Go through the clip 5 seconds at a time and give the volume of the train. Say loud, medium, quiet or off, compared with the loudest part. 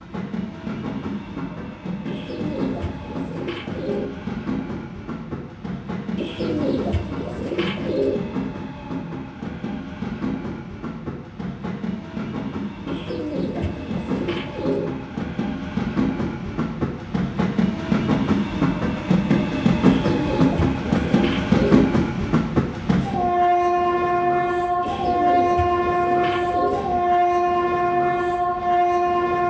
medium, medium, medium, loud, loud, loud.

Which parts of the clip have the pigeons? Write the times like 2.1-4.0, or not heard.
2.0-4.1, 6.2-8.2, 12.8-14.9, 19.8-21.9, 24.8-26.9.